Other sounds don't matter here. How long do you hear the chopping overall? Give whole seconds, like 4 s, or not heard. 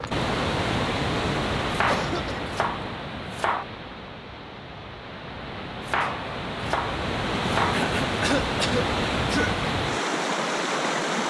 4 s.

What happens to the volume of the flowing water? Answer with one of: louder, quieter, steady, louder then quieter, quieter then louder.
quieter then louder.